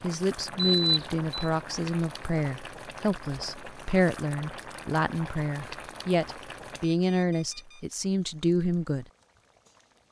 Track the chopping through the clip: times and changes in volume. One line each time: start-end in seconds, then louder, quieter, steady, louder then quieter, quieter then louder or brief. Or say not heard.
not heard.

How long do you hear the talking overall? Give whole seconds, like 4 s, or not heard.
9 s.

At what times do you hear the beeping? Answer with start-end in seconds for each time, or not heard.
0.6-1.3, 6.8-7.8.